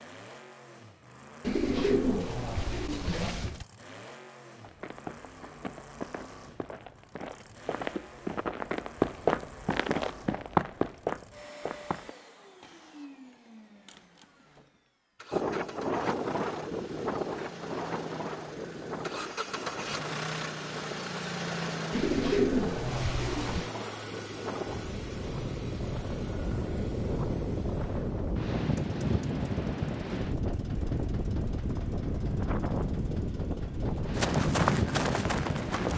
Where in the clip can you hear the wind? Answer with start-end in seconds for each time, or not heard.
15.3-35.9.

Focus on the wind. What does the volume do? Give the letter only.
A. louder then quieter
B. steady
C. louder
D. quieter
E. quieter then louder
E.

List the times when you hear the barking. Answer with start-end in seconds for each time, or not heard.
not heard.